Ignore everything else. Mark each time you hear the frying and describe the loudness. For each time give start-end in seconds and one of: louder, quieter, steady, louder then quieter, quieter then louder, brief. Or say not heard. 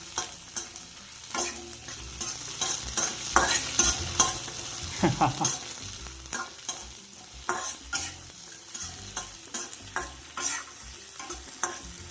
0.0-12.0 louder then quieter.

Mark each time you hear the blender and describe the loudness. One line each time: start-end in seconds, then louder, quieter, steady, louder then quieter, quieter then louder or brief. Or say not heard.
not heard.